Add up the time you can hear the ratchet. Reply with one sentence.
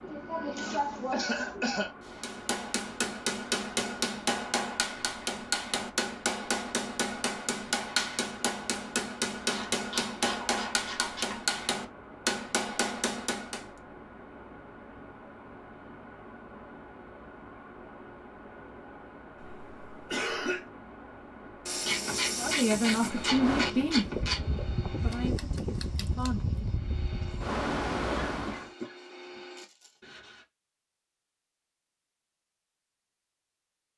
The ratchet can be heard for 5 seconds in total.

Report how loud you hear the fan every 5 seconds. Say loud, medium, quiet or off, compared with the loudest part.
quiet, quiet, quiet, quiet, medium, loud, off.